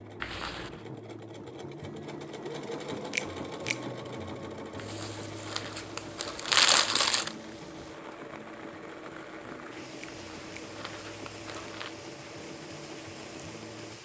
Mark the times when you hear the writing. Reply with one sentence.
The writing can't be heard in this clip.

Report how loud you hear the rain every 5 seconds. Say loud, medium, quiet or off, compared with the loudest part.
off, loud, loud.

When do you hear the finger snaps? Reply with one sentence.
The finger snaps can be heard from 3.1 to 3.8 s and from 9.9 to 10.7 s.